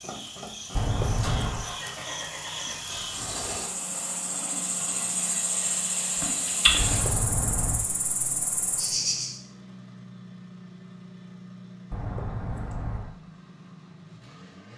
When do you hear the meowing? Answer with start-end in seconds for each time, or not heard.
0.8-1.7, 6.8-7.8, 11.9-13.2.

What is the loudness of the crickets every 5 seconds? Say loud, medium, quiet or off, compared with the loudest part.
medium, loud, off.